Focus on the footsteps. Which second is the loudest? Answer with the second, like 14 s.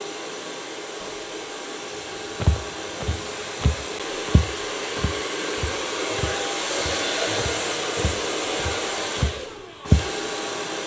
10 s.